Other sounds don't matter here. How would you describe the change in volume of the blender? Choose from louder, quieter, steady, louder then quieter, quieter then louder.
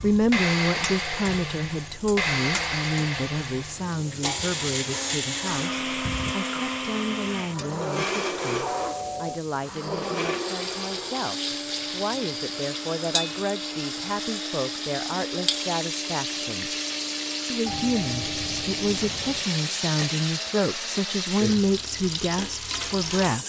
quieter.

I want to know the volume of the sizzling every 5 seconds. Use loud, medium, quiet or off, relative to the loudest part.
medium, medium, loud, loud, loud.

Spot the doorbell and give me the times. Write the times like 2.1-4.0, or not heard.
8.7-9.4, 17.6-19.4.